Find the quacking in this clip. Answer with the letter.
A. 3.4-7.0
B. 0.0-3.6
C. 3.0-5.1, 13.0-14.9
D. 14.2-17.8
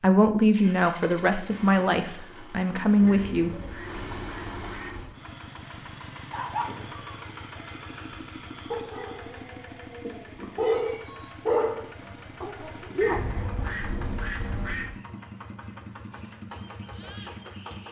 C.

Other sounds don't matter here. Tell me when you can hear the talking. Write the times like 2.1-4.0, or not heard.
0.0-3.6.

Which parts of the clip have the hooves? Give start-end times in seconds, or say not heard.
not heard.